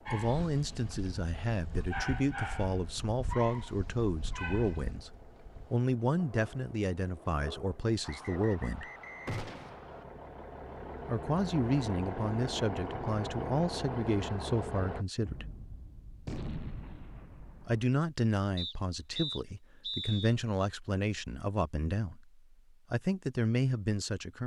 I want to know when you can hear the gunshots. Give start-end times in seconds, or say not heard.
9.2-9.8, 15.2-17.9.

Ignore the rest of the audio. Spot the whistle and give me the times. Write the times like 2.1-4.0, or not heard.
8.0-10.1, 18.6-20.4.